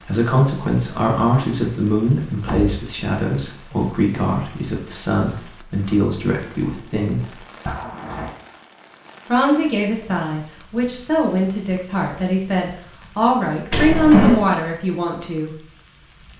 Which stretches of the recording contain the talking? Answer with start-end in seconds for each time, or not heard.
0.0-7.4, 9.2-15.5.